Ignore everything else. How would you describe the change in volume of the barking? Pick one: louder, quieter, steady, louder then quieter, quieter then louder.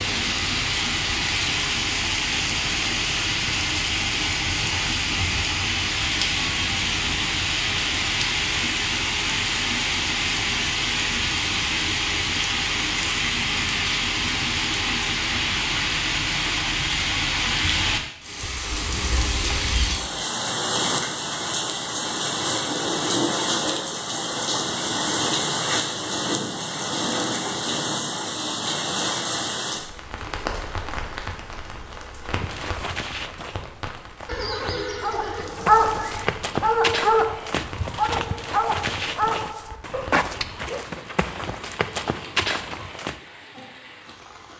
quieter.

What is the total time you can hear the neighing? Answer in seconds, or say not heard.
2 s.